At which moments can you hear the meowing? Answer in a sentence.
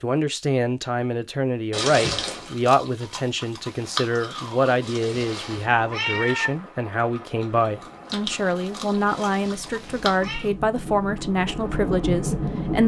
The meowing can be heard from 1.7 to 2.5 s, from 4.8 to 6.5 s and from 9.1 to 10.4 s.